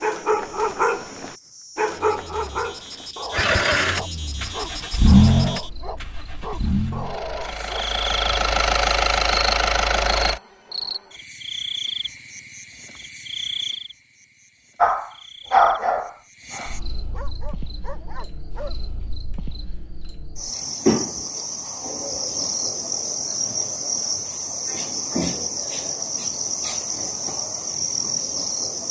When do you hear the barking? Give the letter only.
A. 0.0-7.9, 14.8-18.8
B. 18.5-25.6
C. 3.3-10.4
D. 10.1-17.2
A.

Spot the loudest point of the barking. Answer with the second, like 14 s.
16 s.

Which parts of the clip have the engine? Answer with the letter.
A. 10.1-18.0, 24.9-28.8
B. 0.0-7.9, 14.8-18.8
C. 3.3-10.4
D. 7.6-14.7
C.